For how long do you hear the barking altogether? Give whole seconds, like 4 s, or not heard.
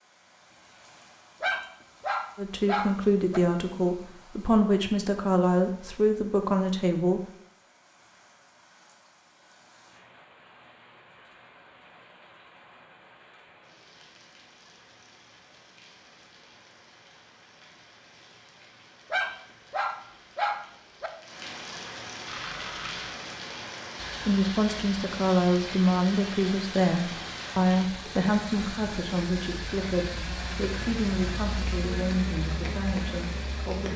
4 s.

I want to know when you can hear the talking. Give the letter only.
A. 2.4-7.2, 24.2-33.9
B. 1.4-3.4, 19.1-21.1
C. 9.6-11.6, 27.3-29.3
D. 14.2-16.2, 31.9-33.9
A.